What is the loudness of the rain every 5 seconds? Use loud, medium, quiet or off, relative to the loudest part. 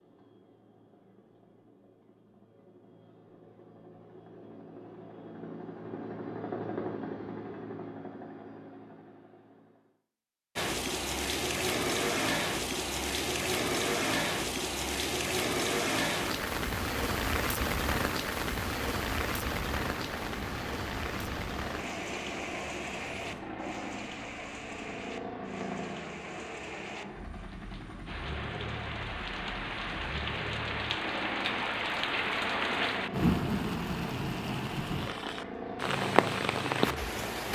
off, off, loud, loud, medium, medium, loud, loud.